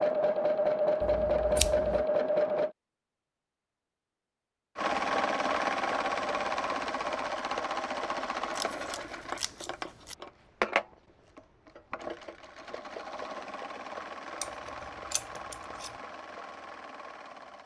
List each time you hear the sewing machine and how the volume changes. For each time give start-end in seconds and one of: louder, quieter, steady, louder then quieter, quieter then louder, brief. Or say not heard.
0.0-2.8 brief
4.8-17.6 quieter.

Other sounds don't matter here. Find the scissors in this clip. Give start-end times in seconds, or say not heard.
1.0-2.0, 8.5-10.2, 14.4-15.9.